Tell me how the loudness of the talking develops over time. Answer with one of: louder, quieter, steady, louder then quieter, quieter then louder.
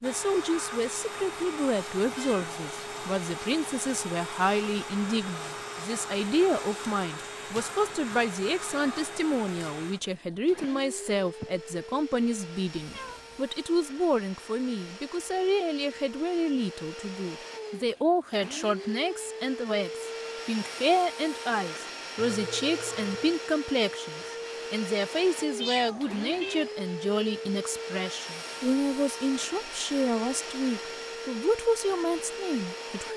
steady.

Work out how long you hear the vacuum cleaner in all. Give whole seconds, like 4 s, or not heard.
33 s.